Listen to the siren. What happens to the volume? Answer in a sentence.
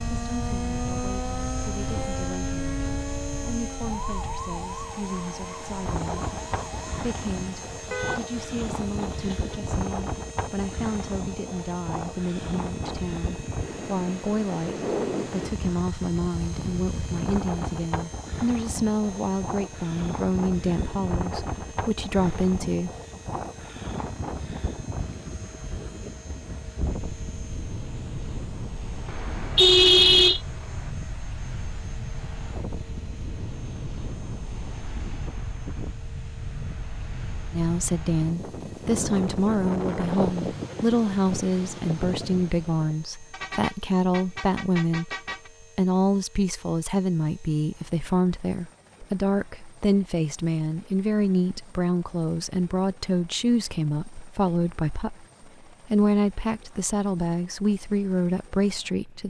The volume of the siren goes down.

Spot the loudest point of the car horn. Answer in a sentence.
The volume of the car horn peaks at 30 seconds.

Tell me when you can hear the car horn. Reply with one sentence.
You can hear the car horn from 7.9 to 9.6 s, from 29.1 to 30.9 s and from 43.3 to 45.5 s.